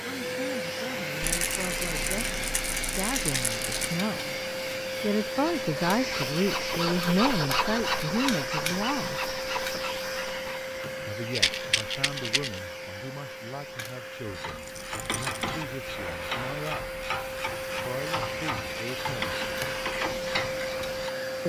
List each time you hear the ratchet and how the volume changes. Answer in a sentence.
You can hear the ratchet from 14.2 to 21.1 s, at a steady volume.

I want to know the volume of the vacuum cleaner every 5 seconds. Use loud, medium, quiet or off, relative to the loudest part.
loud, loud, medium, loud, loud.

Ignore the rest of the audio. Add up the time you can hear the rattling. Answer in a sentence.
You can hear the rattling for 5 seconds altogether.